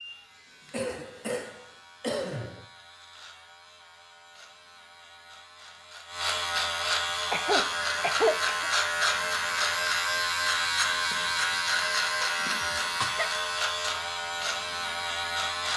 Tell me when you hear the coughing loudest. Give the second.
8 s.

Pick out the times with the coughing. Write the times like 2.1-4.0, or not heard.
0.7-2.6, 7.3-8.7, 12.2-13.3.